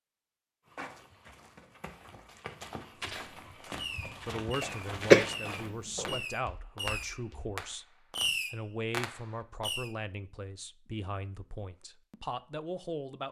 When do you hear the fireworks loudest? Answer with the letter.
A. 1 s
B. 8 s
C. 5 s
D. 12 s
B.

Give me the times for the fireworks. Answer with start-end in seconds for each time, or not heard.
3.8-9.9.